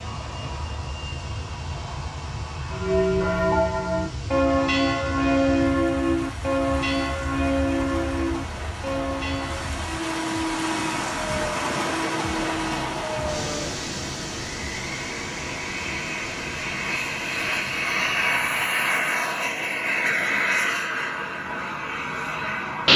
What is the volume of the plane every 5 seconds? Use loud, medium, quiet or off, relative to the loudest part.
quiet, quiet, medium, loud, loud.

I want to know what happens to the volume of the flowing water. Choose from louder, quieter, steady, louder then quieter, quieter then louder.
louder then quieter.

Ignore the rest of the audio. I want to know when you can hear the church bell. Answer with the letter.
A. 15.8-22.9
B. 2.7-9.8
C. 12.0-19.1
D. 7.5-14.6
B.